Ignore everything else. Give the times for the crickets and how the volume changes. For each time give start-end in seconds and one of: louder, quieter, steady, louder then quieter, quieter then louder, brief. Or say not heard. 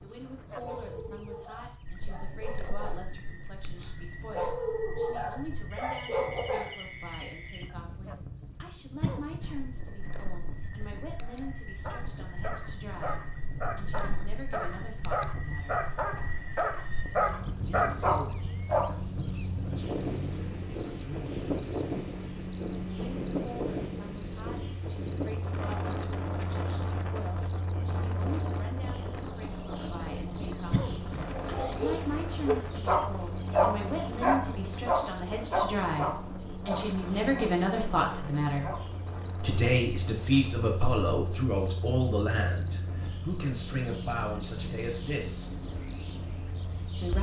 0.0-47.1 louder.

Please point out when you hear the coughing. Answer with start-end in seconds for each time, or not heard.
9.0-9.6, 30.7-31.3.